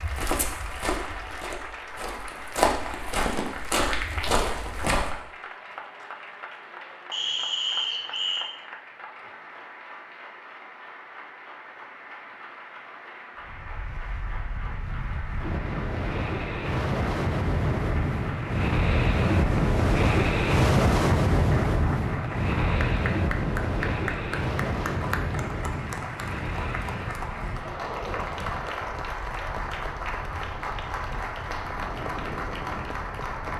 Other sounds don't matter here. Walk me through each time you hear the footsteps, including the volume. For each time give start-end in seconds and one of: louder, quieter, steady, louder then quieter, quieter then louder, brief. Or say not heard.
0.0-5.2 quieter then louder.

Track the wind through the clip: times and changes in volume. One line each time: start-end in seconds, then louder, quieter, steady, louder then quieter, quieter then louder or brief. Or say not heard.
13.3-33.5 louder then quieter.